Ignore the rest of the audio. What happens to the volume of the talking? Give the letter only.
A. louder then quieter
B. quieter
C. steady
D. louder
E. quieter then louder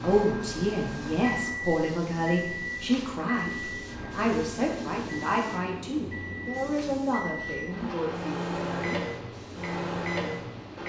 B.